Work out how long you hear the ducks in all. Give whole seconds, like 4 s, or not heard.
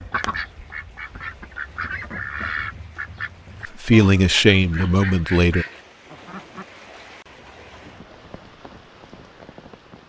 7 s.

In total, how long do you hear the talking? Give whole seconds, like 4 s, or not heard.
2 s.